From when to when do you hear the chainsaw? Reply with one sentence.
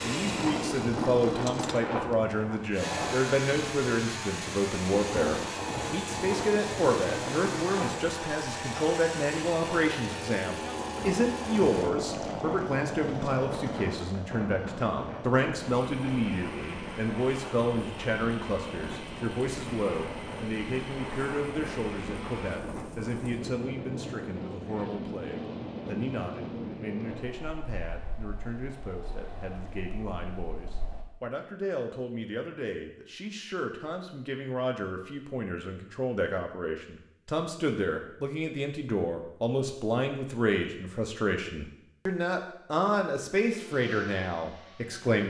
You can hear the chainsaw from 0.0 to 22.6 s and from 43.5 to 45.2 s.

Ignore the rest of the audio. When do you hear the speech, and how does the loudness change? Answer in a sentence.
You can hear the speech from 0.0 to 45.2 s, getting quieter then louder.